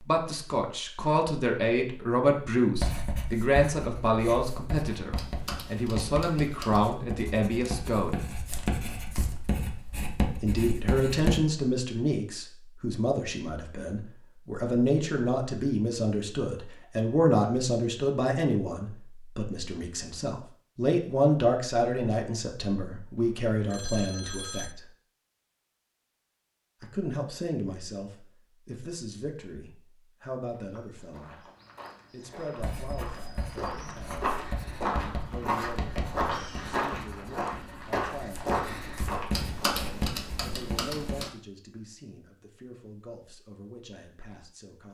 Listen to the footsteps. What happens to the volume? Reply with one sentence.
The loudness of the footsteps goes up.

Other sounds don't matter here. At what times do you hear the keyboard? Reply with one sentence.
You can hear the keyboard from 5.2 to 7.0 s and from 39.3 to 41.3 s.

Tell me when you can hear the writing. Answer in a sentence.
The writing can be heard from 2.8 to 11.4 s and from 32.5 to 41.2 s.